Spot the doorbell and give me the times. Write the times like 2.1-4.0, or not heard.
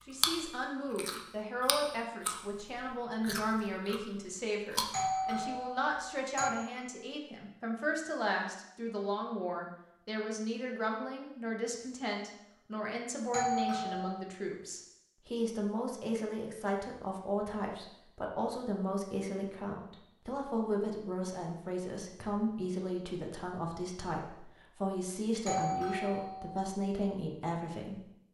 4.9-6.5, 13.3-14.2, 25.4-26.6.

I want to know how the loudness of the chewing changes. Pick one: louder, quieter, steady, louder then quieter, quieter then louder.
louder then quieter.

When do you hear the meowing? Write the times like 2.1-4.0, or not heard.
not heard.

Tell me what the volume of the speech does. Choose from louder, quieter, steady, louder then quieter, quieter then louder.
steady.